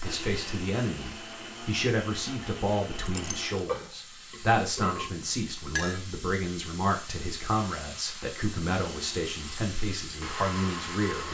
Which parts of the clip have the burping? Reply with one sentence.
The burping can be heard from 3.1 to 5.1 s.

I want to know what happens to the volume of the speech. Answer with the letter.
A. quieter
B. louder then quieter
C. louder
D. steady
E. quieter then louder
D.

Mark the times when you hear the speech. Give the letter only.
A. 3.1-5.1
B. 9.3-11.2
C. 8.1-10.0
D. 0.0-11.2
D.